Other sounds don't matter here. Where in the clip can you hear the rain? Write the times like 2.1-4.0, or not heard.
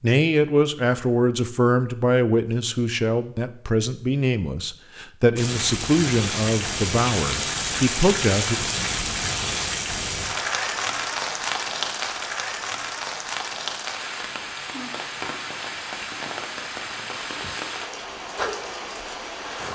5.3-19.7.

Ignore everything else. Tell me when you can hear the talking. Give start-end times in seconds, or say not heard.
0.0-8.6.